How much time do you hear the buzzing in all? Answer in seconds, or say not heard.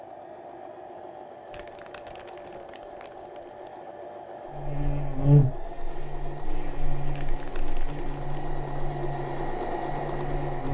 6 s.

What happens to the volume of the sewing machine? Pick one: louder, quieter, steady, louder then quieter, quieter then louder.
louder.